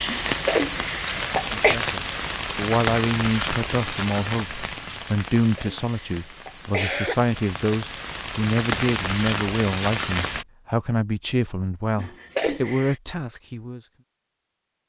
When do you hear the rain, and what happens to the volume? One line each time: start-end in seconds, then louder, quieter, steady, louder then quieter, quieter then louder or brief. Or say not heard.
0.0-10.4 quieter then louder.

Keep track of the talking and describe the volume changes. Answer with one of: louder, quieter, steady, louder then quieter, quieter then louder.
steady.